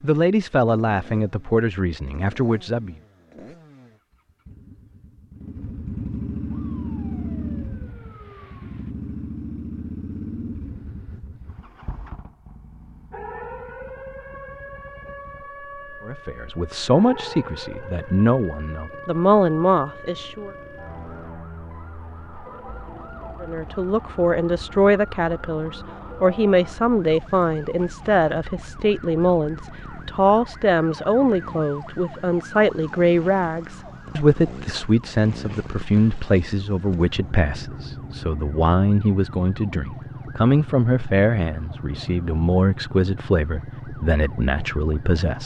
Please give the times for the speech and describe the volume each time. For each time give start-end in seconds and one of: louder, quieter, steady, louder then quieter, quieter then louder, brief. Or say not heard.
0.0-3.0 brief
16.1-20.5 quieter then louder
23.4-45.4 steady.